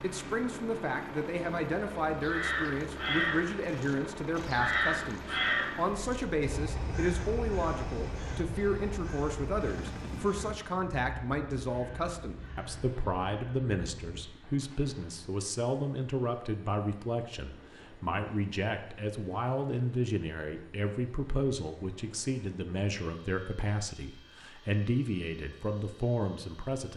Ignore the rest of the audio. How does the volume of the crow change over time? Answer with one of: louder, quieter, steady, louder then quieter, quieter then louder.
quieter.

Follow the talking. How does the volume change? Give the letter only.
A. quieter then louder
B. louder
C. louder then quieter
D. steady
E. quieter
D.